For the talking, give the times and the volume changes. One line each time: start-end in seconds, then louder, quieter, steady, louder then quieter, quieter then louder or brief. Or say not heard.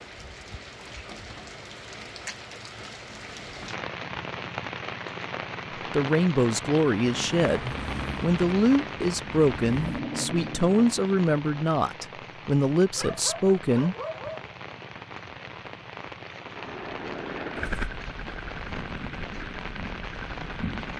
5.9-13.9 steady.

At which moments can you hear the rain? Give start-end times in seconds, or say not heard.
0.0-20.9.